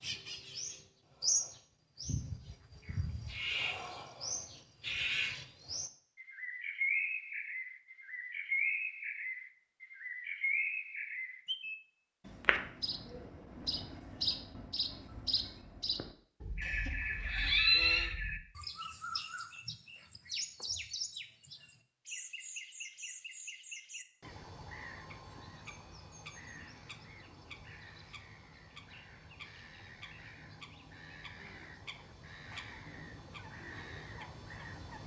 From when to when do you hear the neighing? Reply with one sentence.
The neighing can be heard from 16.6 to 18.1 s.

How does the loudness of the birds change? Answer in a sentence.
The volume of the birds goes down.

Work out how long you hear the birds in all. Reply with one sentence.
You can hear the birds for 35 seconds altogether.